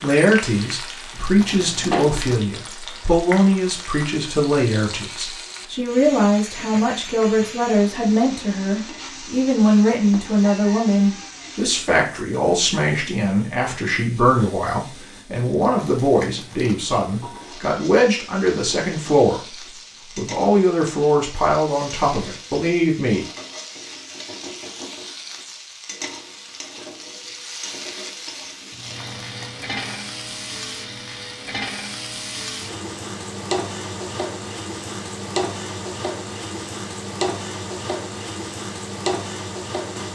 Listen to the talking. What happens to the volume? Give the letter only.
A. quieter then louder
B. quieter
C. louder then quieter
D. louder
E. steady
E.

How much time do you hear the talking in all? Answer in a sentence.
The talking can be heard for 23 seconds in total.